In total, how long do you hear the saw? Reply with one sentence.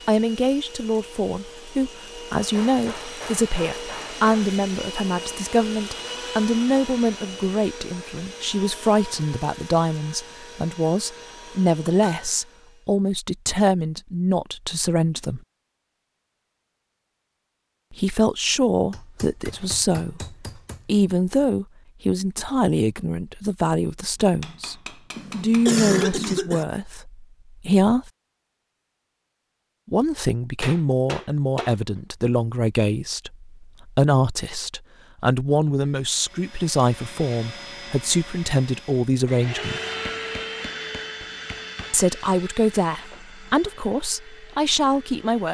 The saw can't be heard in this clip.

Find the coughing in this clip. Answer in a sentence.
The coughing can be heard from 25.1 to 26.6 s.